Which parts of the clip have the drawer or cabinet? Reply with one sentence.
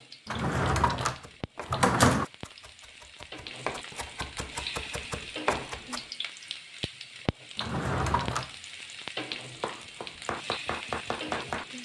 You can hear the drawer or cabinet from 0.2 to 2.2 s and from 7.5 to 8.5 s.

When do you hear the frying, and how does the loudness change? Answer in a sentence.
You can hear the frying from 0.0 to 11.8 s, getting louder.